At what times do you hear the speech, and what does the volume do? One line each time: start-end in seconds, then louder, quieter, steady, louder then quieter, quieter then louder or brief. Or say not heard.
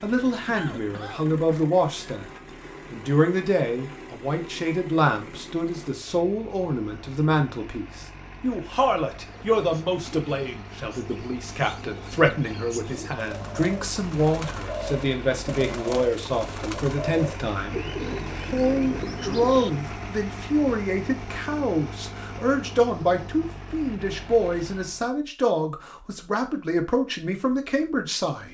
0.0-2.3 brief
2.9-28.5 steady.